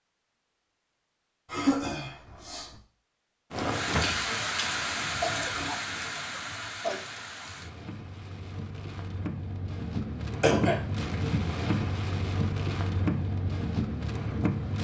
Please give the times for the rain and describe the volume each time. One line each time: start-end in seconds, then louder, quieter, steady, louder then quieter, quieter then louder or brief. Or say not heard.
3.5-14.7 quieter then louder.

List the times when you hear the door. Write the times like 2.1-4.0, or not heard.
3.9-4.3.